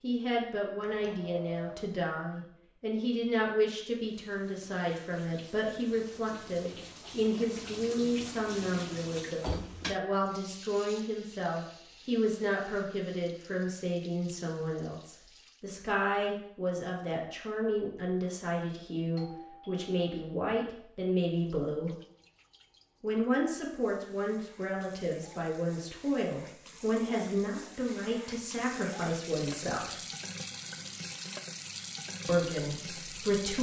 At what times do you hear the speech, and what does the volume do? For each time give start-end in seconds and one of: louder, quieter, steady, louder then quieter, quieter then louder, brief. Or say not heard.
0.0-21.9 steady
23.0-29.9 steady
32.2-33.5 brief.